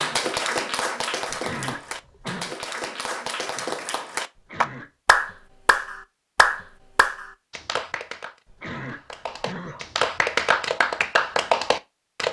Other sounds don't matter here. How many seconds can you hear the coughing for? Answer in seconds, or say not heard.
3 s.